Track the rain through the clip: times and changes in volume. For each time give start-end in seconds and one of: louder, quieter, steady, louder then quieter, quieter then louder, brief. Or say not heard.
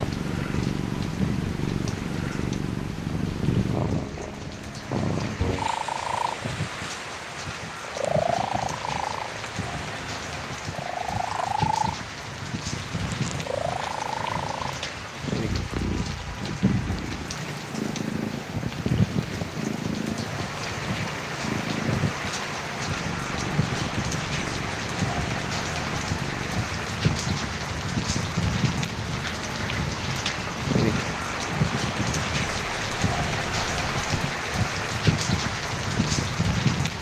0.0-36.9 louder.